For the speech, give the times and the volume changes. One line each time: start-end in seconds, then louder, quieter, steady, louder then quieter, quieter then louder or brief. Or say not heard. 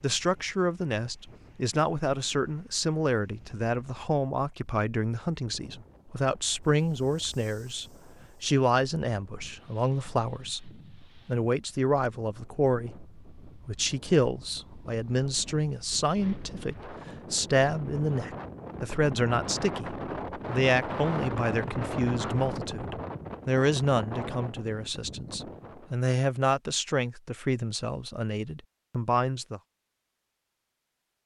0.0-29.6 steady.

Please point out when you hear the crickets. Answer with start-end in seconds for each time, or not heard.
not heard.